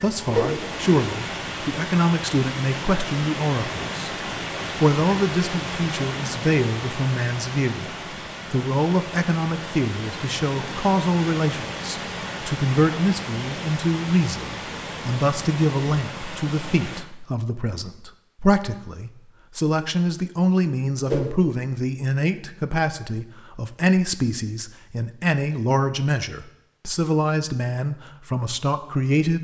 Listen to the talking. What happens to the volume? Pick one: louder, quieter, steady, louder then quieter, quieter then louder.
steady.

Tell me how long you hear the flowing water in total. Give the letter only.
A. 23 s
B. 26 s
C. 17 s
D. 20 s
C.